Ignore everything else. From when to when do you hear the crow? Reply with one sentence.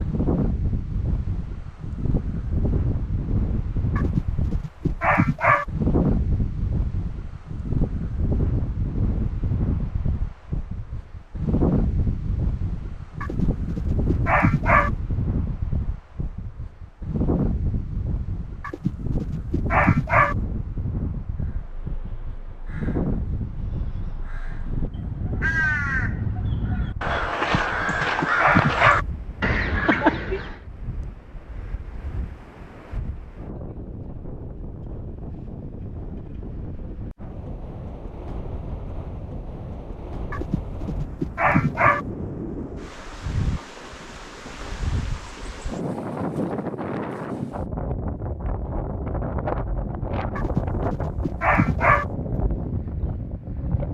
You can hear the crow from 21.4 to 30.6 s.